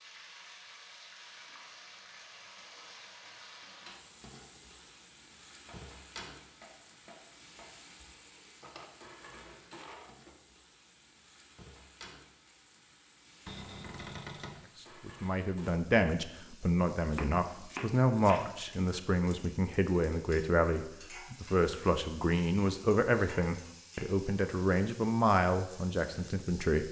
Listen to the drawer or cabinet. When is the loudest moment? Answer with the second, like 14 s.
14 s.